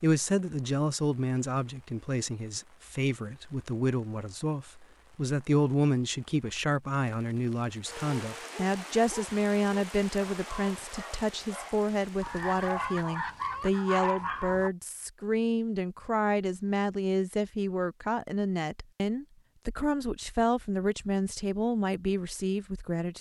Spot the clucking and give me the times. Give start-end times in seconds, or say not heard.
12.2-13.8.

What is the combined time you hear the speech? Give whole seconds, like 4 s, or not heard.
23 s.